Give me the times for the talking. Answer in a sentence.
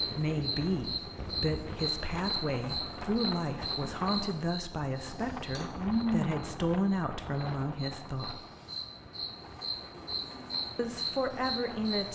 The talking can be heard from 0.1 to 8.4 s and from 10.8 to 12.1 s.